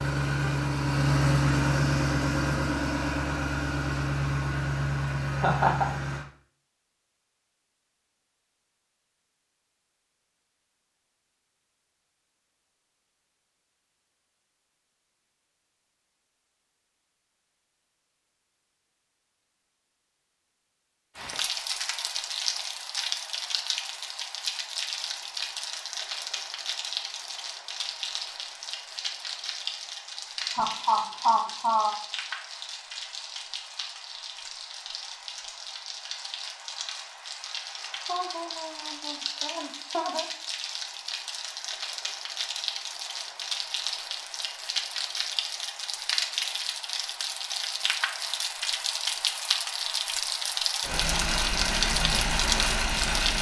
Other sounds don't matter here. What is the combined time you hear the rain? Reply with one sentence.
You can hear the rain for 32 seconds altogether.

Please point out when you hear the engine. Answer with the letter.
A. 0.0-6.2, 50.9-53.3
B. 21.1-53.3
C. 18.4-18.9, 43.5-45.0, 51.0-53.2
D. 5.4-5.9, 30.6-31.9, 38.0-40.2
A.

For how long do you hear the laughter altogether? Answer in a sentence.
The laughter can be heard for 4 seconds in total.